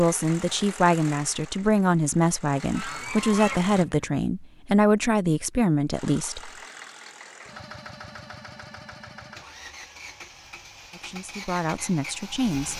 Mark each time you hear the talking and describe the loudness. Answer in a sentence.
The talking can be heard from 0.0 to 6.5 s, at a steady volume; and briefly from 10.9 to 12.7 s.